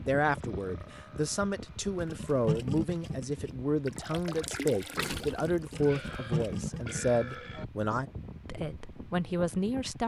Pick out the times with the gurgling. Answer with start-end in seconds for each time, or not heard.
2.0-7.4.